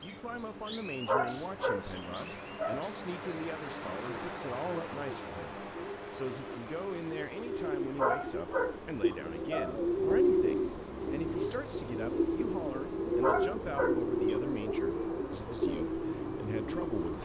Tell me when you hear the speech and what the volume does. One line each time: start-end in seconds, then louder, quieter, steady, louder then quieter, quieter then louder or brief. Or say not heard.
0.0-17.2 steady.